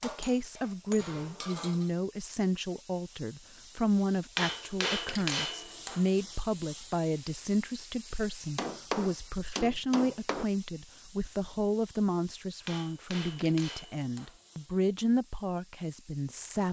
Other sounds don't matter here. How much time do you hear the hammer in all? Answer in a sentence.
The hammer can be heard for 8 seconds in total.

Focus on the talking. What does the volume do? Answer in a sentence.
The volume of the talking stays about the same.